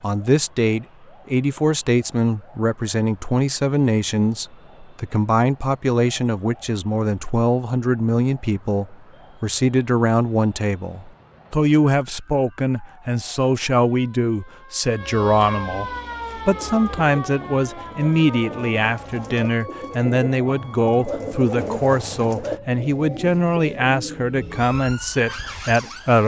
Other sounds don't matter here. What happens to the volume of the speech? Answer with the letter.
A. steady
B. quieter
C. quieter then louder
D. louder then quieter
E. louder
A.